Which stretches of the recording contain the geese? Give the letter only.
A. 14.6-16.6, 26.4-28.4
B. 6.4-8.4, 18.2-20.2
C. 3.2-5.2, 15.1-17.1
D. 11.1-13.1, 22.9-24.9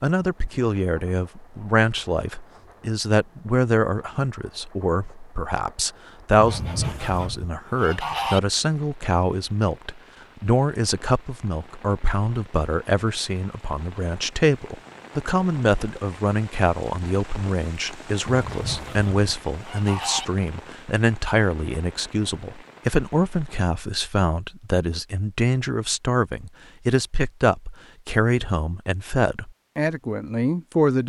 B.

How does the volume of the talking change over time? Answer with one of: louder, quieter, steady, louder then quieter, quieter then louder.
steady.